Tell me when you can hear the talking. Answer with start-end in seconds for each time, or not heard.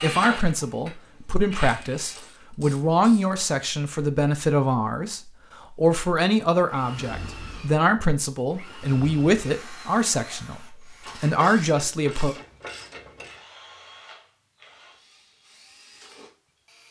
0.0-12.3.